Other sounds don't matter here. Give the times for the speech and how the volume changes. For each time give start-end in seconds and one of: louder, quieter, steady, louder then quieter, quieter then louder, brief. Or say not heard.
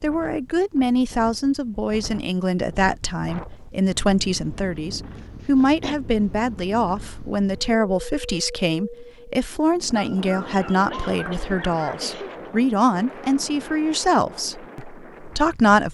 0.0-15.8 steady.